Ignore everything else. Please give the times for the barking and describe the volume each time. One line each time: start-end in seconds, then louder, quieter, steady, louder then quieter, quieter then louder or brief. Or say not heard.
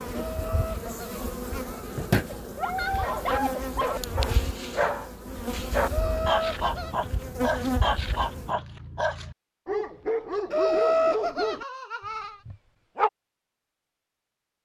2.3-11.7 steady
12.4-13.1 brief.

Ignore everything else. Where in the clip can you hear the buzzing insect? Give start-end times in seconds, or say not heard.
0.0-8.6.